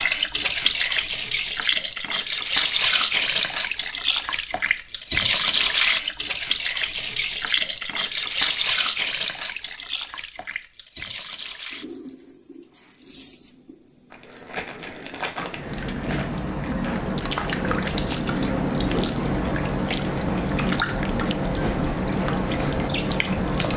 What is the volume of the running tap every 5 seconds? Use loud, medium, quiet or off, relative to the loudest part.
loud, loud, quiet, loud, loud.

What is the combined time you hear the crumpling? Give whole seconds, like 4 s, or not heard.
2 s.